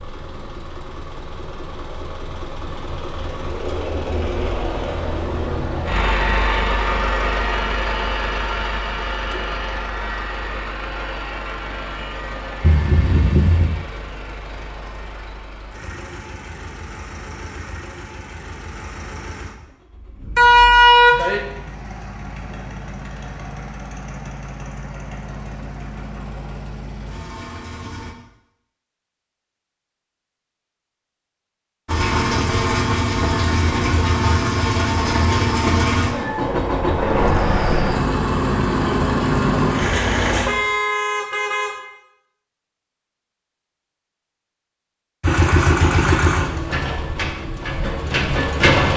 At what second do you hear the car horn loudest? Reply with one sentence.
The volume of the car horn peaks at 21 seconds.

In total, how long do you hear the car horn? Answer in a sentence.
You can hear the car horn for 4 seconds altogether.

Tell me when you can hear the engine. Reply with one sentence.
The engine can be heard from 0.0 to 28.1 s, from 31.9 to 40.5 s and from 45.2 to 48.9 s.